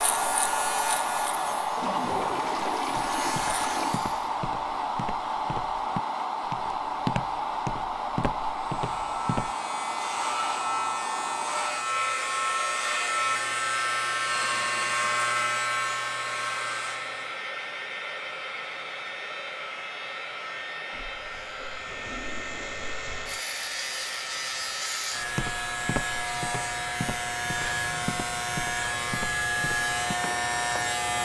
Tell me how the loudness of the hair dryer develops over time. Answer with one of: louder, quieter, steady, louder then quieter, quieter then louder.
quieter.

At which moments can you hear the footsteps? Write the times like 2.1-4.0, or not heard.
3.0-9.6, 25.2-31.1.